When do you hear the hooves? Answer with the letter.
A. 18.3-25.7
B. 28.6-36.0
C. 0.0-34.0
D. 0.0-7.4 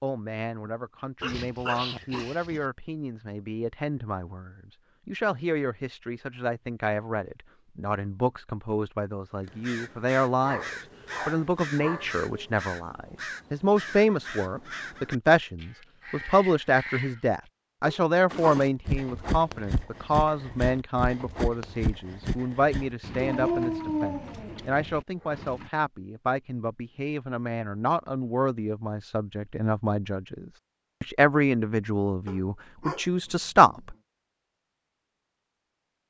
A.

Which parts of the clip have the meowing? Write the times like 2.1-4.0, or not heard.
not heard.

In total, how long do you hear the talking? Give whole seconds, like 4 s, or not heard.
34 s.